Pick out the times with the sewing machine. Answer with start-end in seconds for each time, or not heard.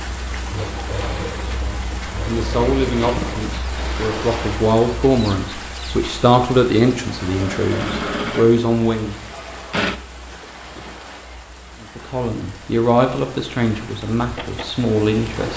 0.0-3.5, 7.1-10.0.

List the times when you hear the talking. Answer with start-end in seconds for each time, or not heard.
1.5-9.2, 11.8-15.5.